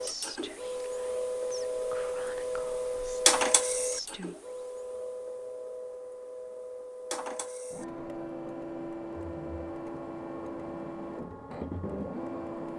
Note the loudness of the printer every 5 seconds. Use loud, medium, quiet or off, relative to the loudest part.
loud, medium, medium.